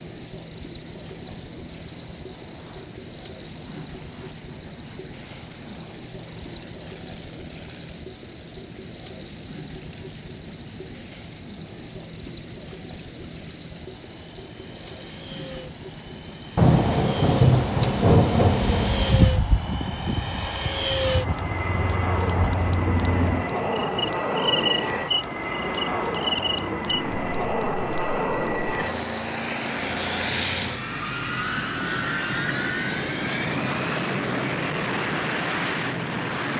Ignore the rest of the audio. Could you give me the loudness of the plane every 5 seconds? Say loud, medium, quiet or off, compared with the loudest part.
quiet, quiet, quiet, medium, loud, loud, loud, loud.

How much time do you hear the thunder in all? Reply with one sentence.
You can hear the thunder for 3 seconds altogether.